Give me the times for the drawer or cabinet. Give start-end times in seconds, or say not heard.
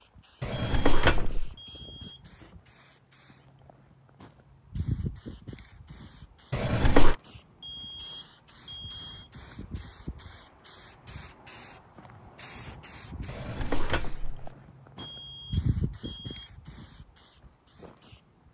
0.4-1.5, 6.5-7.2, 13.2-14.5.